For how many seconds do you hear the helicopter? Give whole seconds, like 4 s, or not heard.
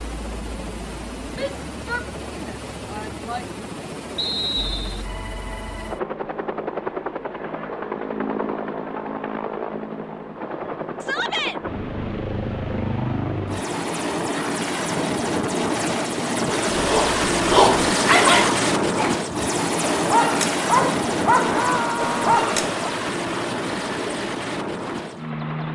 26 s.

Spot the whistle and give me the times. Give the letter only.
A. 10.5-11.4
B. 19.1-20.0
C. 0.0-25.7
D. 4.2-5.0
D.